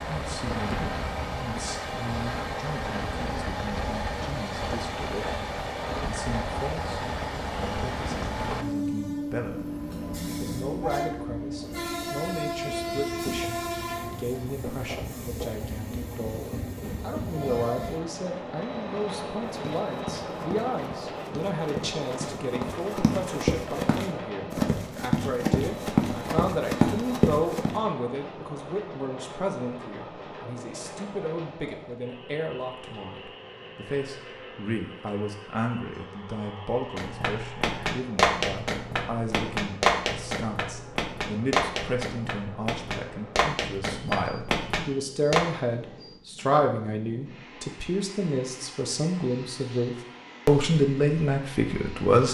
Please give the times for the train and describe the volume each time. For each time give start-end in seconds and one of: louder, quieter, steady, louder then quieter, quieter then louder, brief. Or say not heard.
0.0-52.2 quieter.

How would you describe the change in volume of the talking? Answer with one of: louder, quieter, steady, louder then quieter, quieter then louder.
louder.